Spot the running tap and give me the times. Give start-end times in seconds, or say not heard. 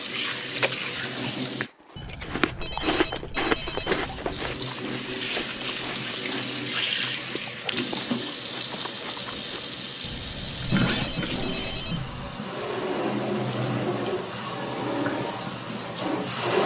0.0-1.7, 3.5-16.6.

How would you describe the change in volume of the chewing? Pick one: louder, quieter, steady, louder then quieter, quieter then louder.
louder then quieter.